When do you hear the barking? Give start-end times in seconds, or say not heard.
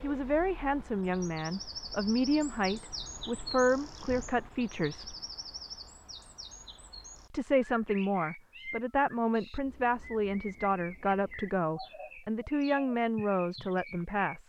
not heard.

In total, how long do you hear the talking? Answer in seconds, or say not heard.
12 s.